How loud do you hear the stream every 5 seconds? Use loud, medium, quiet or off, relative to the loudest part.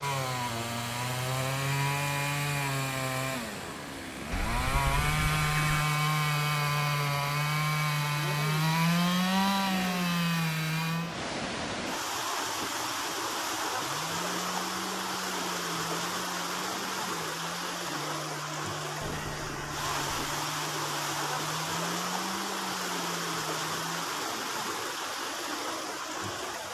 quiet, quiet, loud, loud, loud, loud.